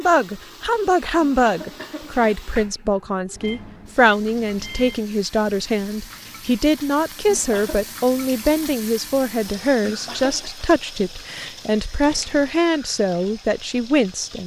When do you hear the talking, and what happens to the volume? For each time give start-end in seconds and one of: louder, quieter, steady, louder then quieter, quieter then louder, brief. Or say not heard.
0.0-14.4 steady.